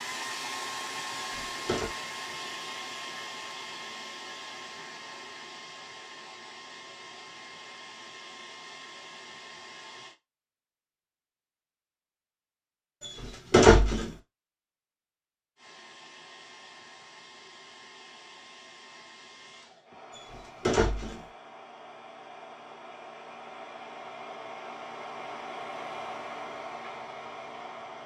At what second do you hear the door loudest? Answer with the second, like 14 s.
14 s.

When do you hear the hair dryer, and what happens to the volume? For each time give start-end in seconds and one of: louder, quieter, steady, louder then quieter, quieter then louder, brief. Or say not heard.
0.0-10.2 quieter
15.6-28.0 louder.